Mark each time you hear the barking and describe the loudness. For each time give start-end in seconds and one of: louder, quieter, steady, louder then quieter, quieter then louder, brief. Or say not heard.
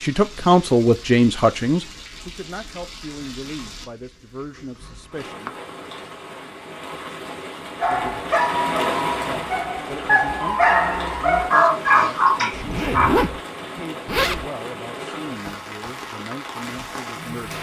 7.8-13.1 quieter then louder.